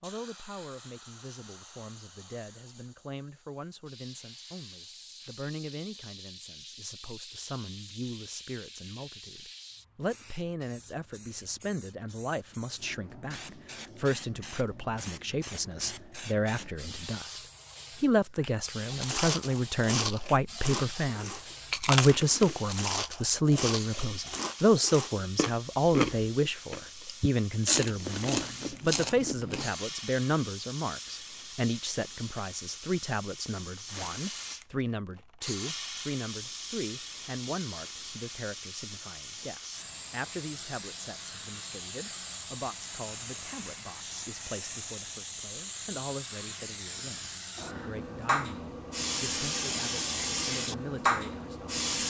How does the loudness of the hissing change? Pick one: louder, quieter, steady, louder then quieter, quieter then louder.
louder.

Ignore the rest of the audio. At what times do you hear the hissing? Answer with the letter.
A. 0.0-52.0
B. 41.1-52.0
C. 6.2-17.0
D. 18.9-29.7
A.